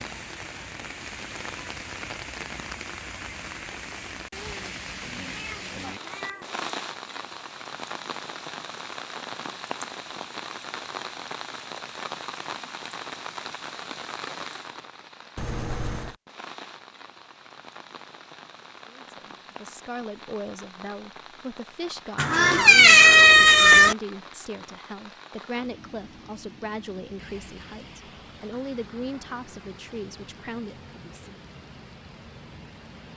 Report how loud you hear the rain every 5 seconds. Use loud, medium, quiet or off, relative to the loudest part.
loud, loud, loud, medium, medium, medium, medium.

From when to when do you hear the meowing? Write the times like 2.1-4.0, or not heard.
5.3-6.6, 15.3-16.1, 22.1-23.9.